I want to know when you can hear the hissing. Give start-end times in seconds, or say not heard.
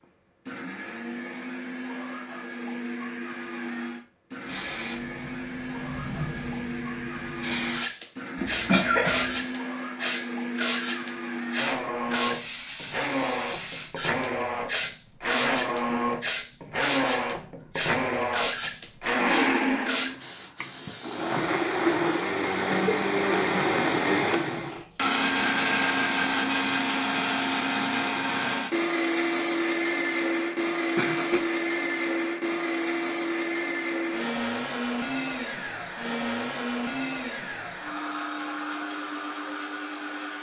4.5-24.1.